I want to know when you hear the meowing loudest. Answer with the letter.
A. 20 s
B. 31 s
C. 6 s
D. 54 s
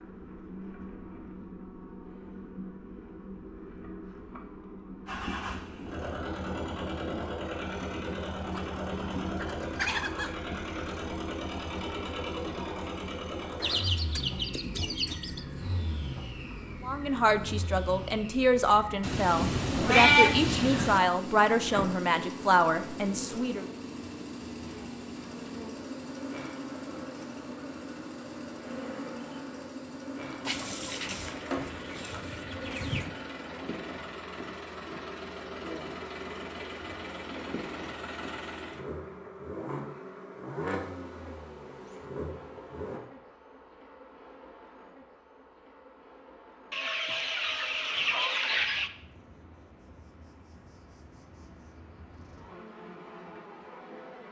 A.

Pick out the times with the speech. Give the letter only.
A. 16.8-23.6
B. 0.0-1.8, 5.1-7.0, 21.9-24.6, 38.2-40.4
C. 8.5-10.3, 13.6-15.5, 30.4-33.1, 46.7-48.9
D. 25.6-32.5
A.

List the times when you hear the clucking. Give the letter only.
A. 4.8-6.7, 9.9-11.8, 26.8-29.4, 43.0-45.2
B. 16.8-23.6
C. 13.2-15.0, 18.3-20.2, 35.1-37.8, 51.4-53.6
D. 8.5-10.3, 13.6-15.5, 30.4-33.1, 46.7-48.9
D.